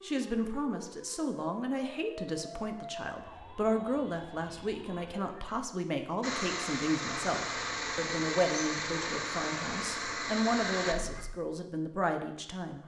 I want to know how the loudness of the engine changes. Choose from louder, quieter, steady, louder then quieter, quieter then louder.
steady.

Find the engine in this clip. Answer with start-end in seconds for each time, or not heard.
6.2-11.2.